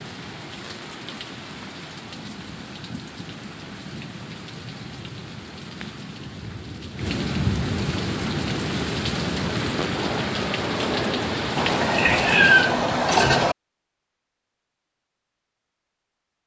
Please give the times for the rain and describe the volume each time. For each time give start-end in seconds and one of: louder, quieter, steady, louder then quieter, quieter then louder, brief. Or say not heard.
0.0-12.9 louder.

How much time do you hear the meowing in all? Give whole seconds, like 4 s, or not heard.
2 s.